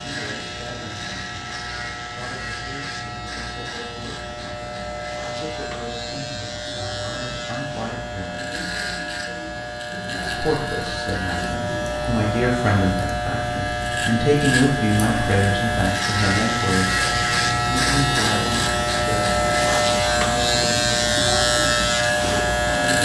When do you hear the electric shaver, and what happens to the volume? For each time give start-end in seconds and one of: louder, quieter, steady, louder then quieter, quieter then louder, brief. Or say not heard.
0.0-22.9 louder.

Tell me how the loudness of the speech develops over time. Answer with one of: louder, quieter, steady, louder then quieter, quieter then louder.
louder then quieter.